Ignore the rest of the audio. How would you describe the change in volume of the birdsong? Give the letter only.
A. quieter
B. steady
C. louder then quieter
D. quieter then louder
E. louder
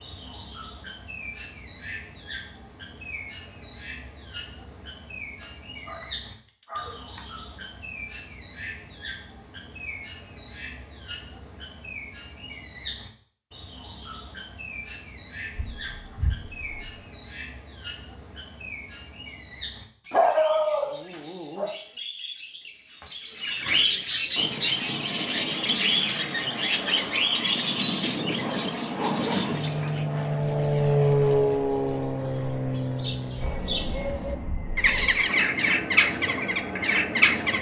E.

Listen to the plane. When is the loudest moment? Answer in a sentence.
The loudest moment of the plane is at 31 seconds.